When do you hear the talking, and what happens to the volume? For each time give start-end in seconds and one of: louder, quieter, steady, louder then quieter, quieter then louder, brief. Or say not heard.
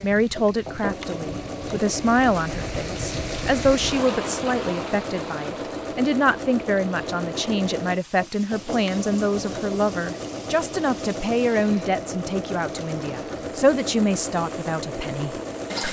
0.0-15.8 steady.